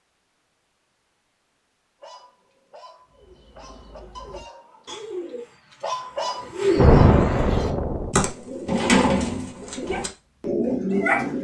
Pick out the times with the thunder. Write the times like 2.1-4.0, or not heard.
6.8-8.2.